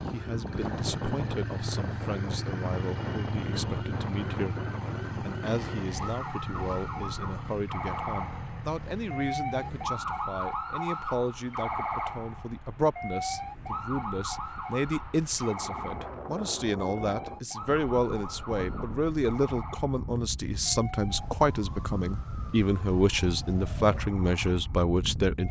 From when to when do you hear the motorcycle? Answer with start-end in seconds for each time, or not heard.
0.0-9.9.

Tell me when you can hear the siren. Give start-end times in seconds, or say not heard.
0.0-25.4.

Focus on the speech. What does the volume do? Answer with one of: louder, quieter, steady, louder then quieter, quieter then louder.
louder.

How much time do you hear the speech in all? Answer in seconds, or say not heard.
25 s.